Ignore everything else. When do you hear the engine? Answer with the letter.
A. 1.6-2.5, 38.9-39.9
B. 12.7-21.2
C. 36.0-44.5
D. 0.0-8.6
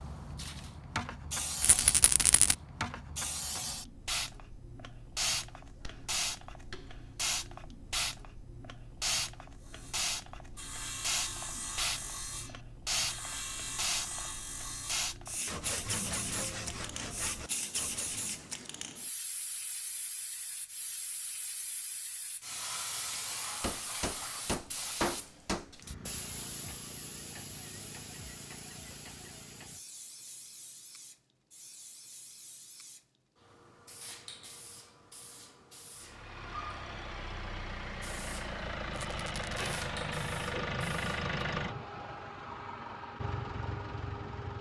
C.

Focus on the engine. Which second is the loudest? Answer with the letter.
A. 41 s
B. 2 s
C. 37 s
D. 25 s
A.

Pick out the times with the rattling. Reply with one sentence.
The rattling can be heard from 1.6 to 2.5 s and from 38.9 to 39.9 s.